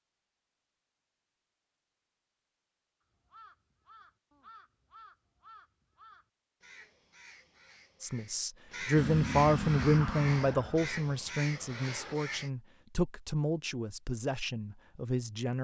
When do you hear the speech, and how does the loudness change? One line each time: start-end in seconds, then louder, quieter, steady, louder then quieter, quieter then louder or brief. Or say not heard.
8.0-15.5 quieter.